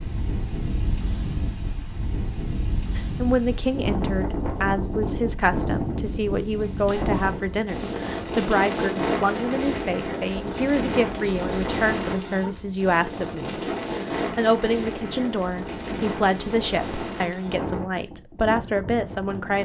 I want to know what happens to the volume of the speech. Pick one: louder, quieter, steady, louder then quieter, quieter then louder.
steady.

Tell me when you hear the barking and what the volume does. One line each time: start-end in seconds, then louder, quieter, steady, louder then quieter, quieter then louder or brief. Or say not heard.
not heard.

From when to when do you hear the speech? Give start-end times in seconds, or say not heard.
3.0-19.6.